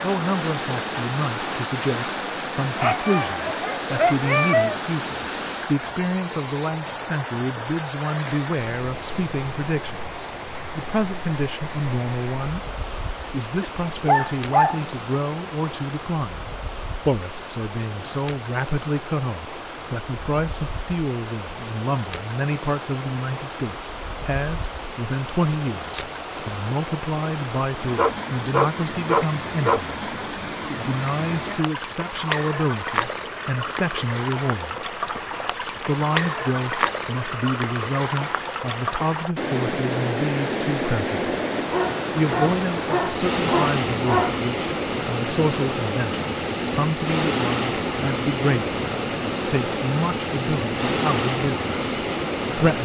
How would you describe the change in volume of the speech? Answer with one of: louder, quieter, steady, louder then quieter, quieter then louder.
steady.